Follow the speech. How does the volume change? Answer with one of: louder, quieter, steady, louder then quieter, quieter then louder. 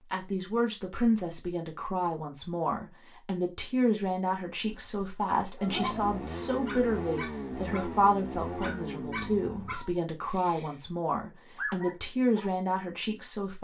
steady.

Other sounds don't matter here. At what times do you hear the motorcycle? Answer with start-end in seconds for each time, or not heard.
5.7-9.8.